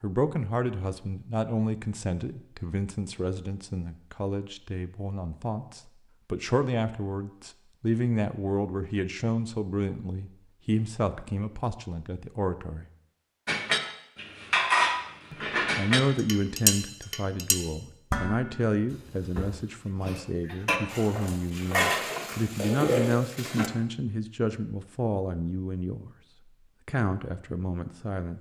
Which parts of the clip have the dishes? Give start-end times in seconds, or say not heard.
13.4-23.7.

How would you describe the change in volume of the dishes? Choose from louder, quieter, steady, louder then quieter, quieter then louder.
quieter then louder.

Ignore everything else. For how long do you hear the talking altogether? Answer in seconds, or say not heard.
25 s.